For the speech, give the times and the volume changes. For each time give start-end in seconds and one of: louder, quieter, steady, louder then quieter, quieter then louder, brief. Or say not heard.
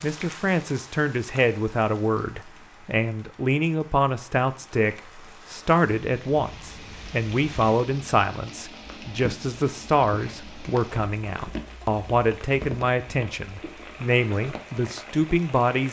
0.0-15.8 steady.